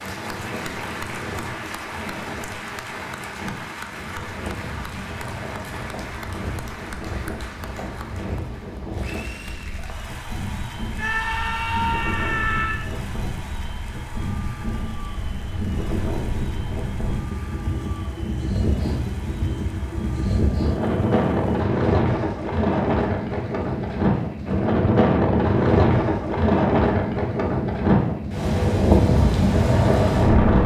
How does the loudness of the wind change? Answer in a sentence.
The volume of the wind goes up.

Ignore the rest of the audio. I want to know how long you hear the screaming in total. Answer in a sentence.
You can hear the screaming for 2 seconds altogether.